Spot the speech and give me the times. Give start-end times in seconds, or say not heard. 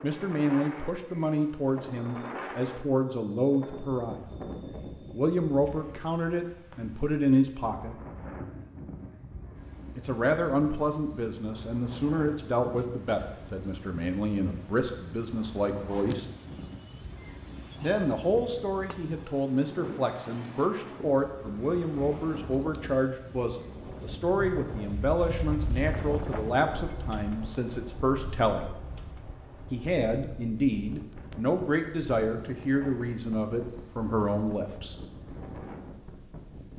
0.0-4.3, 5.1-8.0, 9.9-16.2, 17.8-28.8, 29.7-35.0.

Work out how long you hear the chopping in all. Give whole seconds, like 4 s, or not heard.
not heard.